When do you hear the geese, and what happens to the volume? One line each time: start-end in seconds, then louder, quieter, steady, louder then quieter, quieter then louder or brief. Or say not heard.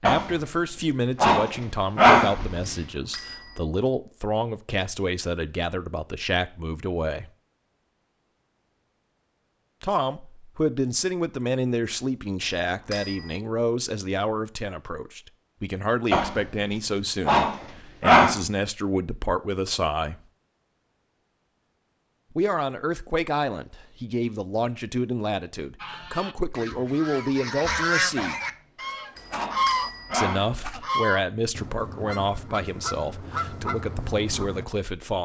25.8-34.6 louder then quieter.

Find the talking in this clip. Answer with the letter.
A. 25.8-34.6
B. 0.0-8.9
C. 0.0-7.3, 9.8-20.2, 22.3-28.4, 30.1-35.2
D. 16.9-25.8
C.